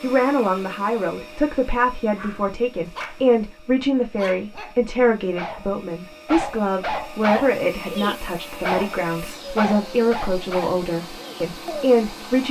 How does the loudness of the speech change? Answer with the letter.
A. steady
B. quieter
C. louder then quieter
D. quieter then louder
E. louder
A.